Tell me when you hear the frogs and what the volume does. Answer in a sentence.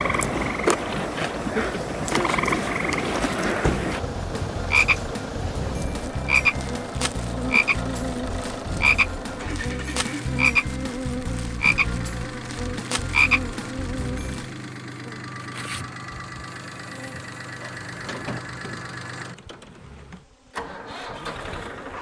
You can hear the frogs from 0.0 to 14.4 s, at a steady volume.